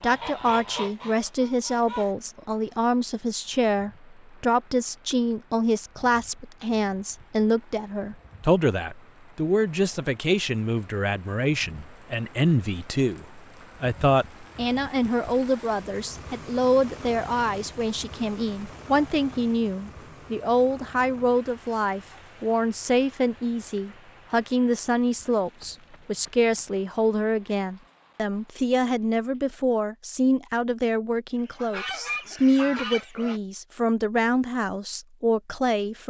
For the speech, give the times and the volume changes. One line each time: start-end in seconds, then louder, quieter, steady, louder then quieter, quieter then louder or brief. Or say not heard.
0.0-36.0 steady.